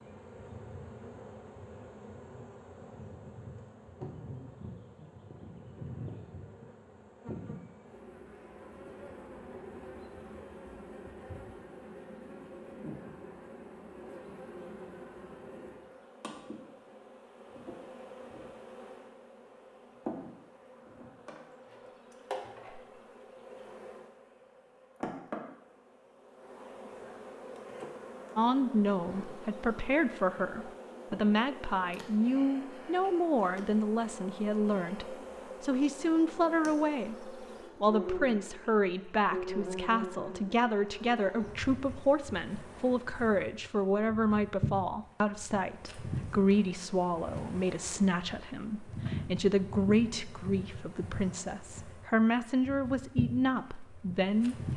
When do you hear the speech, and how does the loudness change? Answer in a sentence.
The speech can be heard from 28.4 to 54.7 s, at a steady volume.